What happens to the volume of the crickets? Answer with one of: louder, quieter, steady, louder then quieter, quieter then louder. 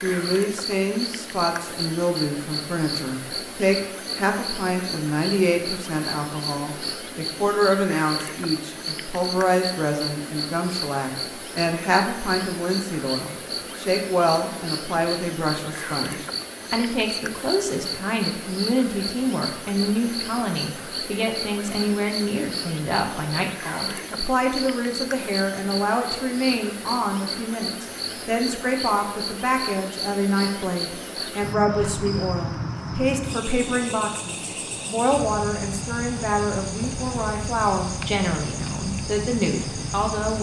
steady.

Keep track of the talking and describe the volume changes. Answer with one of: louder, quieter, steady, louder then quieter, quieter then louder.
steady.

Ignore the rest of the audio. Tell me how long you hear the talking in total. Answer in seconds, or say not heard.
40 s.